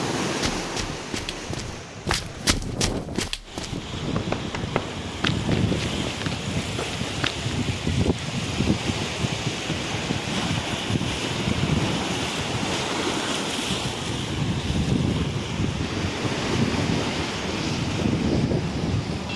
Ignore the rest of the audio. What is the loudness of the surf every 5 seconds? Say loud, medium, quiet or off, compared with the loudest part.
medium, loud, loud, loud.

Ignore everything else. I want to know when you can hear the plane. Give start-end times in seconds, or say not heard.
15.8-19.3.